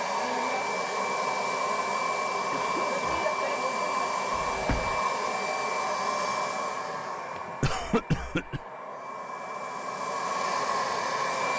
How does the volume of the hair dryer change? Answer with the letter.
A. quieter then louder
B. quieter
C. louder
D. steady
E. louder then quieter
A.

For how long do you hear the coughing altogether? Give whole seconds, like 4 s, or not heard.
2 s.